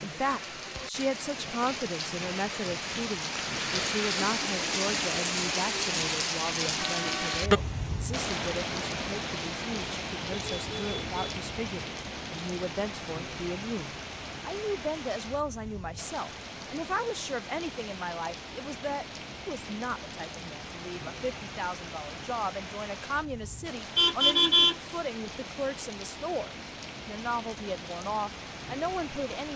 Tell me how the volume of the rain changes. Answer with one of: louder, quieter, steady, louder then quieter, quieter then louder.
quieter.